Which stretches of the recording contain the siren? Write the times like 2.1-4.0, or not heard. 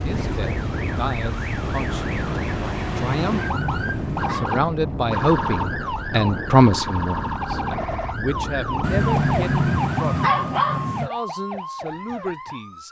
0.0-12.8.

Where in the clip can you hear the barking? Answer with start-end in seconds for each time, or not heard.
2.9-4.7, 8.8-11.1.